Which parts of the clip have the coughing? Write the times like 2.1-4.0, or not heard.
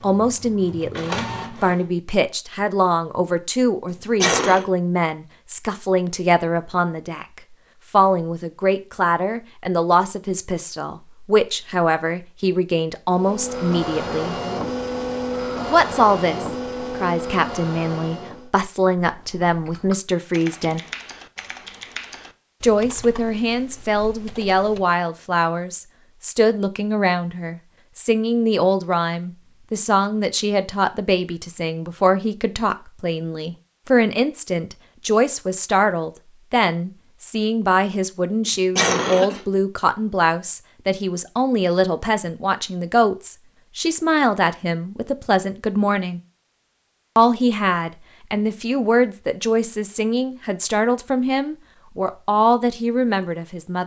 4.2-4.7, 38.5-39.4.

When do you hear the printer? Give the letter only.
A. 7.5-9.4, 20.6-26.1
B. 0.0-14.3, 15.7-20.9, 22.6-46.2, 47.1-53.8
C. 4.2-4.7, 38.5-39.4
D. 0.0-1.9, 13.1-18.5
D.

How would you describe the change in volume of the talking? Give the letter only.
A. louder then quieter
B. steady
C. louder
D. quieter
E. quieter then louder
B.